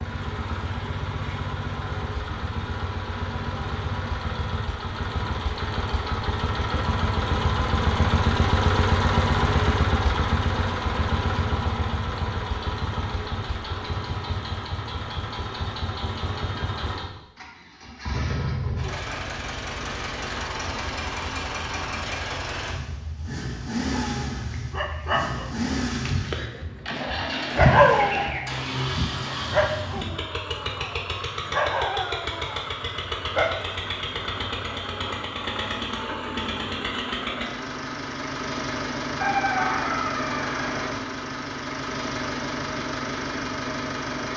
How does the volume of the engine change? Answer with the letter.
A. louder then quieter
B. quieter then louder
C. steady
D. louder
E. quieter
C.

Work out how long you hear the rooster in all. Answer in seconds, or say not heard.
2 s.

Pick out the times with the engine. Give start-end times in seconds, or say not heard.
0.0-44.3.